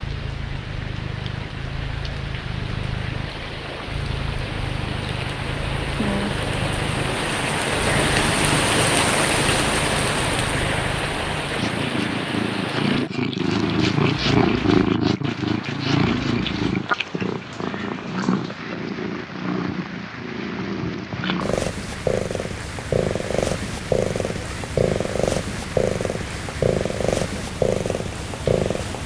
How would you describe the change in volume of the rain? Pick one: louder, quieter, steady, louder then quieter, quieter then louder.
louder then quieter.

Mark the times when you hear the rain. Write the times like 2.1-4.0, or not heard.
0.0-29.0.